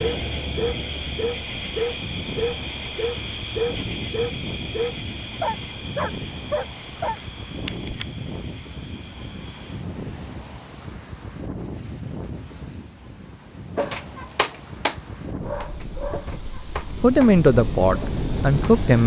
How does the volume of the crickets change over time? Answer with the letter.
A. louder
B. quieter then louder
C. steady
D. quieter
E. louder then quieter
D.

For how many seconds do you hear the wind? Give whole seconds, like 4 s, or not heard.
19 s.